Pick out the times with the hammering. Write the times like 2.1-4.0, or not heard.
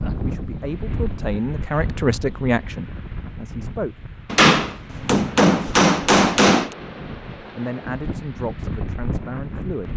4.3-6.7.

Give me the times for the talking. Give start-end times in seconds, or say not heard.
0.1-4.1, 7.5-9.9.